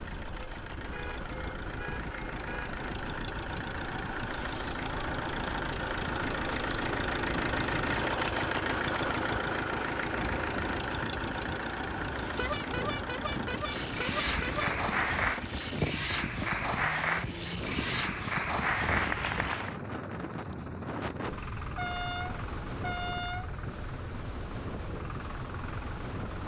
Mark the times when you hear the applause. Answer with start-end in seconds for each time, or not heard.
13.6-19.8.